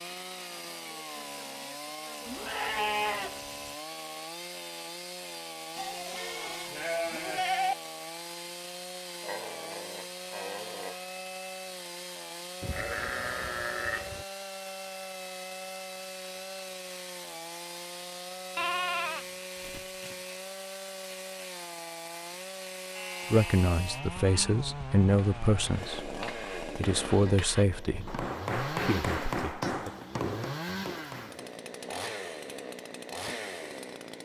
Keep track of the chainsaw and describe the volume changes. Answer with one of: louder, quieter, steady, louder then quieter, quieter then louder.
steady.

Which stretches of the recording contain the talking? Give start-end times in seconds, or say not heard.
23.3-29.9.